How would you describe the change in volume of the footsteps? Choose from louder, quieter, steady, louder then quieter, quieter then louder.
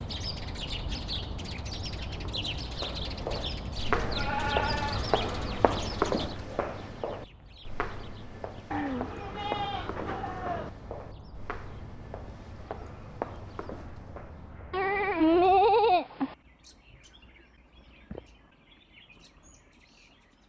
quieter.